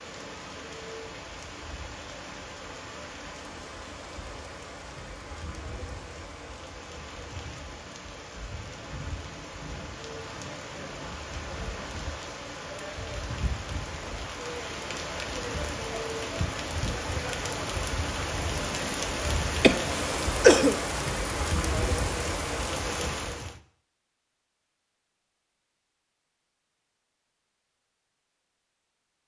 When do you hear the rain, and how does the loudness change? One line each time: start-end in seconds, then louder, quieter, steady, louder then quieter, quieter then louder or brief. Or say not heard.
0.0-23.6 louder.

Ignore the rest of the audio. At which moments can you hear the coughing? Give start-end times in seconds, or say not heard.
19.6-20.8.